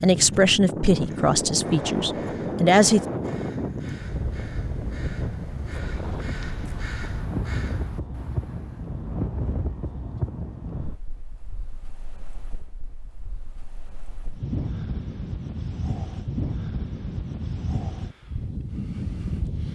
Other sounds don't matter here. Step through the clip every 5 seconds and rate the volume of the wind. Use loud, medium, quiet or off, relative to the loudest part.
loud, loud, medium, loud.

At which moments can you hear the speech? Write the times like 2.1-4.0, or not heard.
0.0-3.0.